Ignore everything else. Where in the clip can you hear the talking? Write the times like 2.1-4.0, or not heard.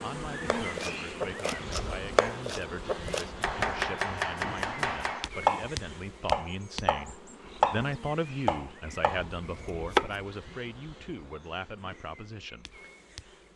0.0-12.7.